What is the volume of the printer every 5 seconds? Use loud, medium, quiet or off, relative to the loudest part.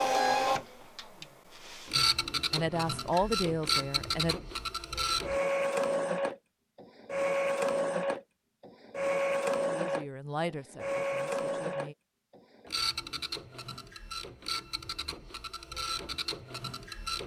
loud, loud, medium, medium.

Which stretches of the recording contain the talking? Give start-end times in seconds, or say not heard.
1.9-4.4, 9.7-11.9.